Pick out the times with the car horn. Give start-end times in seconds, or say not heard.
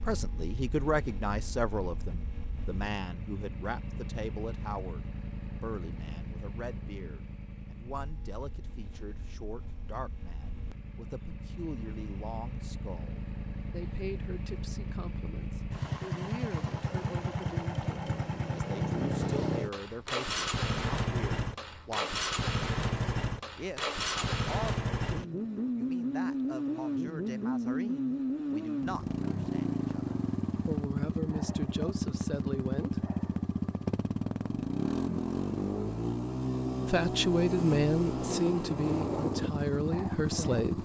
not heard.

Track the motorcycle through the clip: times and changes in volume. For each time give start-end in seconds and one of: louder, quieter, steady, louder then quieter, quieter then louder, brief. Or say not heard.
0.0-40.8 louder.